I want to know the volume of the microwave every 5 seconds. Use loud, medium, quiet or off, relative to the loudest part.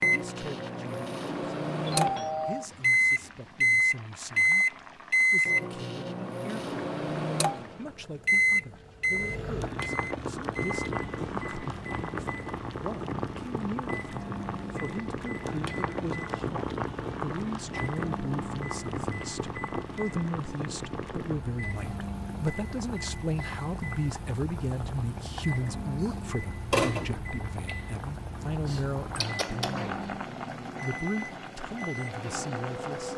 loud, loud, quiet, quiet, quiet, quiet, quiet.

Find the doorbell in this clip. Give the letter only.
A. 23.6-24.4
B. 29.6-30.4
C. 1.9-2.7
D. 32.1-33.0
C.